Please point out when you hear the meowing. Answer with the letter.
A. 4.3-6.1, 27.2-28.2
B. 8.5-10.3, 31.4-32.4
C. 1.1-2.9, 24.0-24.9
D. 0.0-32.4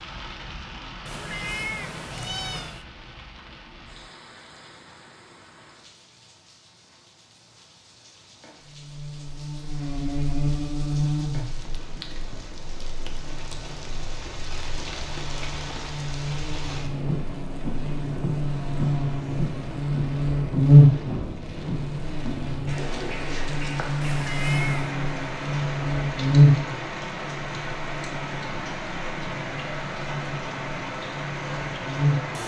C.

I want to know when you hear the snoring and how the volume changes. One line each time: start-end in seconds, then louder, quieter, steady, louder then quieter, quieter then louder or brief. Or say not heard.
not heard.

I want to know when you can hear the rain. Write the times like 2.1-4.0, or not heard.
0.0-32.4.